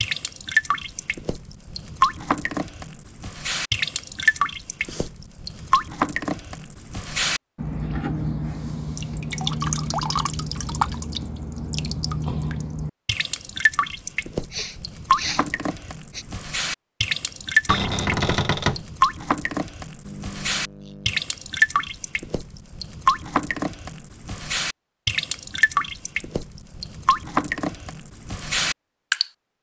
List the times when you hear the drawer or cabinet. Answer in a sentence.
You can hear the drawer or cabinet from 17.6 to 18.9 s.